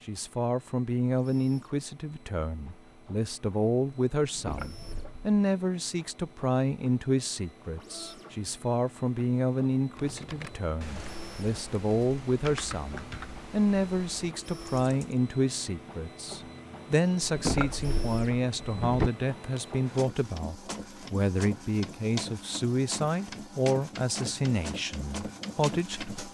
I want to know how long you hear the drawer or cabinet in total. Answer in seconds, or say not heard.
3 s.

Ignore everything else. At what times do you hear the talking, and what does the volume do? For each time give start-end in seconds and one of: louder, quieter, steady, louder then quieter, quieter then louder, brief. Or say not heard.
0.1-26.1 steady.